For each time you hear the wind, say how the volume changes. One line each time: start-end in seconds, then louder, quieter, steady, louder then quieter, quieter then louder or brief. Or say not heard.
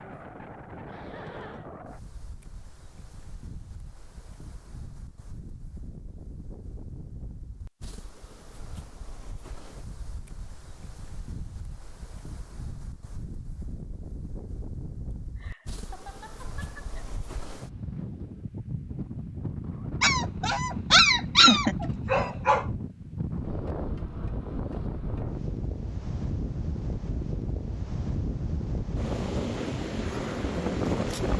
0.0-31.3 louder.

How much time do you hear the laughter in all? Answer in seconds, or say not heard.
4 s.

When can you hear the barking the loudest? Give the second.
21 s.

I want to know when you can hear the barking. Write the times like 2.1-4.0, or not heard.
20.0-22.6.